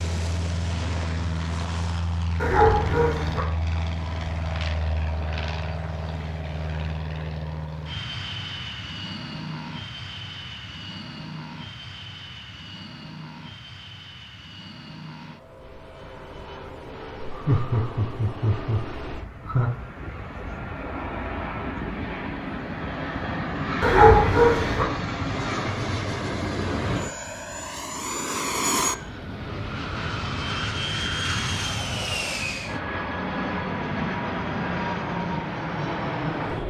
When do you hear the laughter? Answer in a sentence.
You can hear the laughter from 17.2 to 19.7 s.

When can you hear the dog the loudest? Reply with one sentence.
The loudest moment of the dog is at 24 seconds.